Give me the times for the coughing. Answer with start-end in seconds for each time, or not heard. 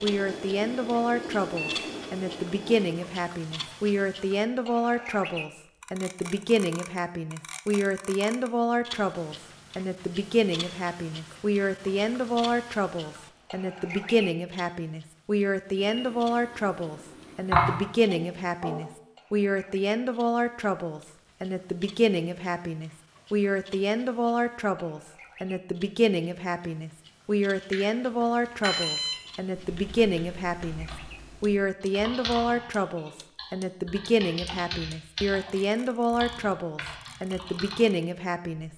17.5-18.9.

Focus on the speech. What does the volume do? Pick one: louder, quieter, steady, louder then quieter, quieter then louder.
steady.